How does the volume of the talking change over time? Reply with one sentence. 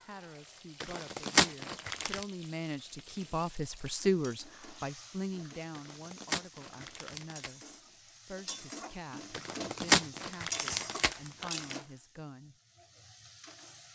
The loudness of the talking goes up, then down.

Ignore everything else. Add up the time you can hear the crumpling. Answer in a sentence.
You can hear the crumpling for 6 seconds altogether.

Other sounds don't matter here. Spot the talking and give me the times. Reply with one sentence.
The talking can be heard from 0.1 to 12.6 s.